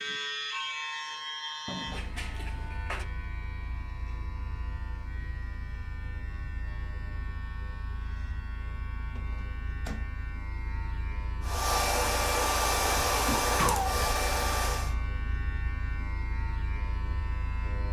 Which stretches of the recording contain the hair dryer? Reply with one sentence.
You can hear the hair dryer from 11.4 to 14.9 s.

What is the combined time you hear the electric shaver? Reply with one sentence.
The electric shaver can be heard for 18 seconds in total.